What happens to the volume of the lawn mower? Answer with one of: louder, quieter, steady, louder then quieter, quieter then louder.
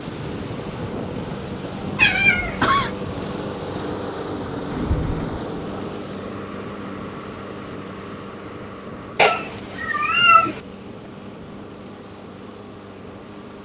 quieter.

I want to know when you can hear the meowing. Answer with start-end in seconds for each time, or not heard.
1.9-2.9, 4.7-5.5, 9.2-10.6.